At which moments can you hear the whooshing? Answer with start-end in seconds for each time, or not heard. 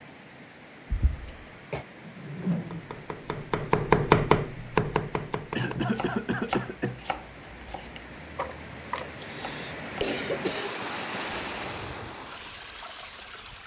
2.0-2.9.